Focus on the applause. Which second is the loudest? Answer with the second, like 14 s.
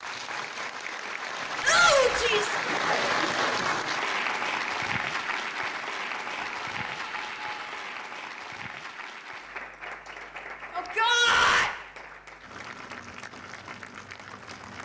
3 s.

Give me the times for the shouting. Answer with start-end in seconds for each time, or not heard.
1.6-2.5, 6.3-8.0, 10.7-11.7.